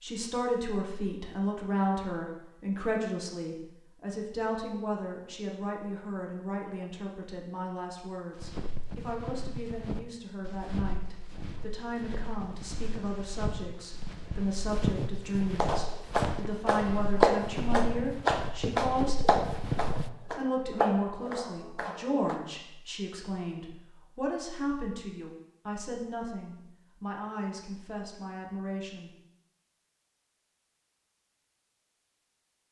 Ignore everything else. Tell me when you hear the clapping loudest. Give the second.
17 s.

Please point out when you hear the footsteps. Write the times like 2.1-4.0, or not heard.
8.3-20.1.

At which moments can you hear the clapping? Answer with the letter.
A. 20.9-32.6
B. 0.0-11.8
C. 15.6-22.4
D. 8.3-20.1
C.